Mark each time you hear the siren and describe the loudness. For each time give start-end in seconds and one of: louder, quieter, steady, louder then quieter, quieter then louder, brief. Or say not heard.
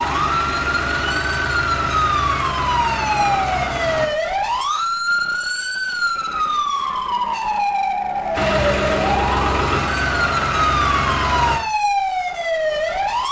0.0-13.2 steady.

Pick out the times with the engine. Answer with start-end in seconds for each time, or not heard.
0.0-4.1, 8.3-11.6.